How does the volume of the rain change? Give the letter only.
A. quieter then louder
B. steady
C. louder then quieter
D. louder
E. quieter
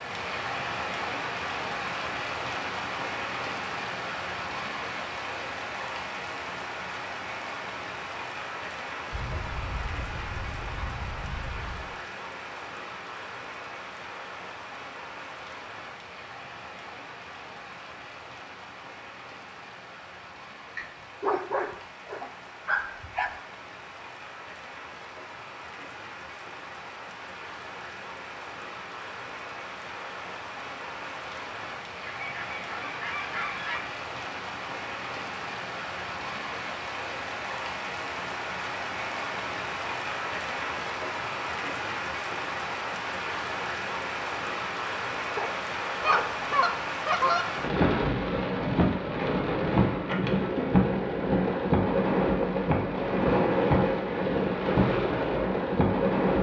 A.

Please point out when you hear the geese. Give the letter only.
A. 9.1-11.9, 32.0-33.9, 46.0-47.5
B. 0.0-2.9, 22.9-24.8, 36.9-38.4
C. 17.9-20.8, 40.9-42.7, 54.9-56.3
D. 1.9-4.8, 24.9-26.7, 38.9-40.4
A.